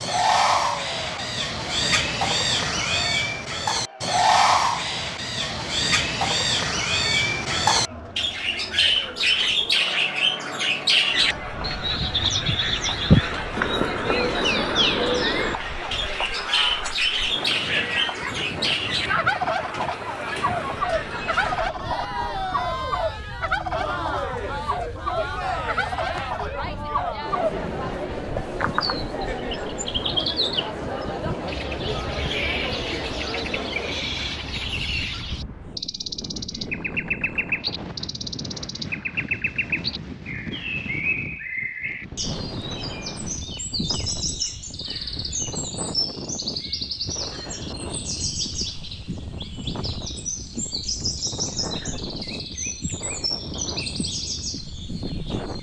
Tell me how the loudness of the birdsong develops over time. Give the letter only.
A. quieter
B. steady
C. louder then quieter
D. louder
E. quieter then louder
A.